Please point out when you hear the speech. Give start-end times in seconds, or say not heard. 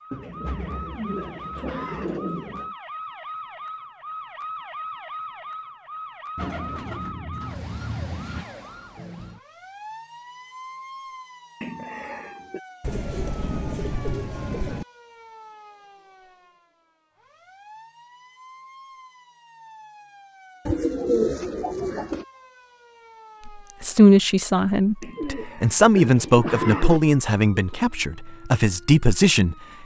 23.4-29.6.